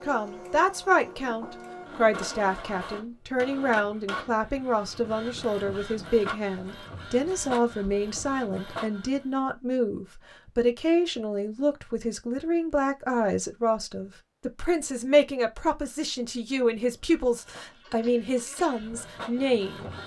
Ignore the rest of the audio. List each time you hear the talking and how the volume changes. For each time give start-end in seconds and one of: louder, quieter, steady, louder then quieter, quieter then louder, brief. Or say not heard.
0.0-19.9 steady.